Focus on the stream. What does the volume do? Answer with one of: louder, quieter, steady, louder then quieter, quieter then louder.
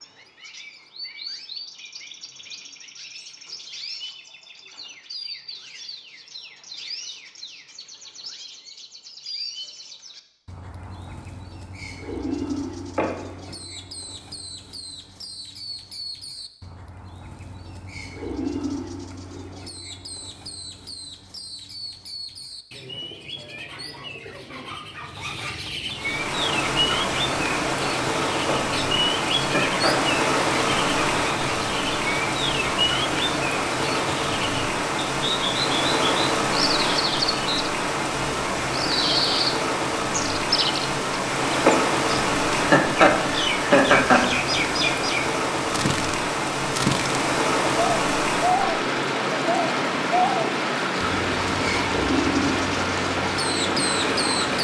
steady.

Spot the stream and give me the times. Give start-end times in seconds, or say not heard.
25.9-54.5.